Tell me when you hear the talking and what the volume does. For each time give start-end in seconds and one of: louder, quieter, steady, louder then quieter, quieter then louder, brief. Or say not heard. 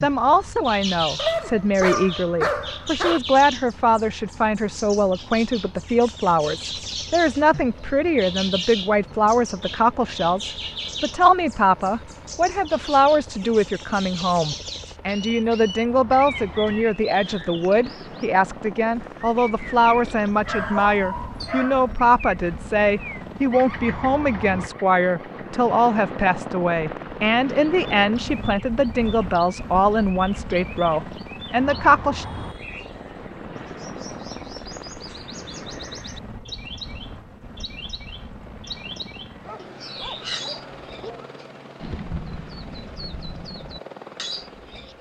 0.0-32.2 steady.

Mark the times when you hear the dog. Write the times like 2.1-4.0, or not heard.
1.1-3.2, 20.4-21.9, 39.5-41.3.